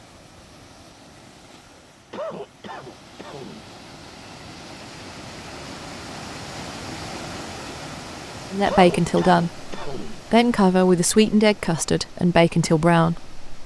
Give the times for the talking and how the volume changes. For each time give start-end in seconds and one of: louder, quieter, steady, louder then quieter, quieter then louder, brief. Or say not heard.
8.5-13.4 steady.